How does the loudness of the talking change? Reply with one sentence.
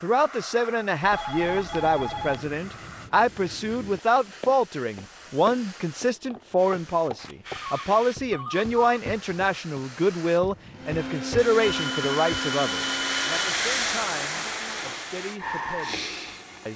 The loudness of the talking goes down.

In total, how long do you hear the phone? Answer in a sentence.
The phone can be heard for 5 seconds in total.